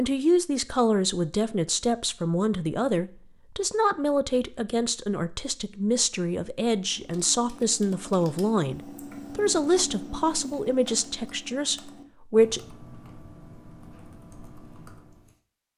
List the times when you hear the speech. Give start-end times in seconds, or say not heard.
0.0-12.6.